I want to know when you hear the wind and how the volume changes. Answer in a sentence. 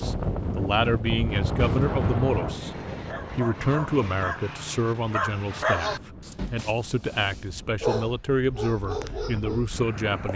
The wind can be heard from 0.0 to 10.3 s, getting quieter.